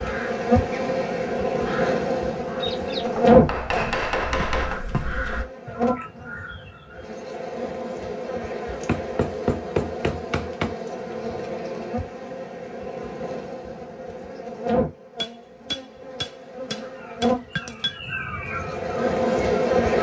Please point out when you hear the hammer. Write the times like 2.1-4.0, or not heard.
3.0-4.8, 8.8-10.8, 15.2-18.0.